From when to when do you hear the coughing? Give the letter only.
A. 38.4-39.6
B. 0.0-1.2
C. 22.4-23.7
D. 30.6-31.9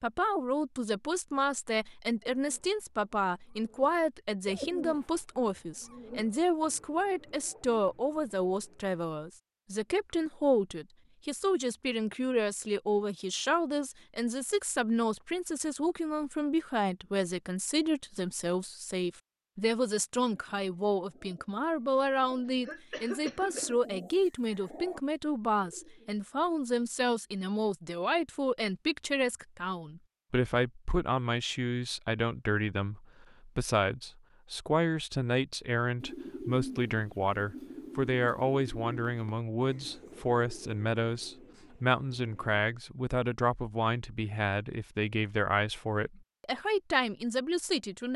C.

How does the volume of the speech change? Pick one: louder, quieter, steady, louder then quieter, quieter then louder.
steady.